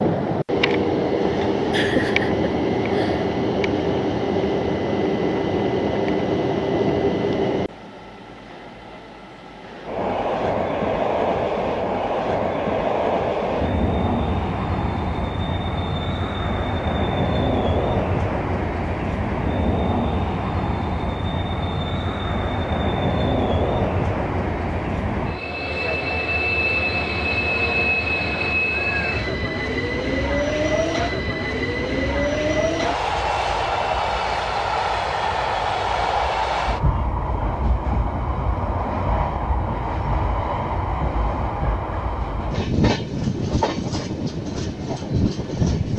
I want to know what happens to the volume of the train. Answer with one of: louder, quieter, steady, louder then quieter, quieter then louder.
steady.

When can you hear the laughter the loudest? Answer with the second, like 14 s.
2 s.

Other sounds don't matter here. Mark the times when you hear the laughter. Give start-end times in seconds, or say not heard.
1.7-3.2.